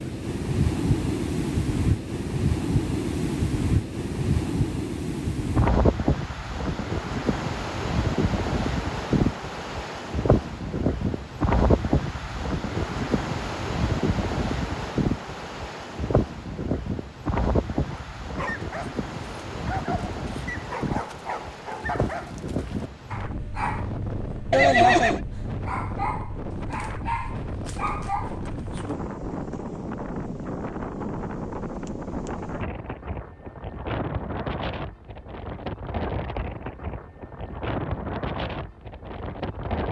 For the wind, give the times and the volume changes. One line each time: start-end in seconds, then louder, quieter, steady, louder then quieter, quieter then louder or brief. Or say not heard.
0.0-39.8 quieter.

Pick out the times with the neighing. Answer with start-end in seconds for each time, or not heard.
24.5-25.2.